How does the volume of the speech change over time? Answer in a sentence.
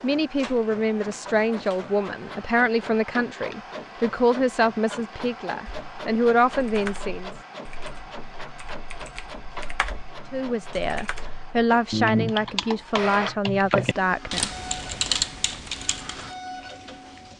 The volume of the speech stays about the same.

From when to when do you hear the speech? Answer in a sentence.
You can hear the speech from 0.0 to 7.3 s and from 10.3 to 14.6 s.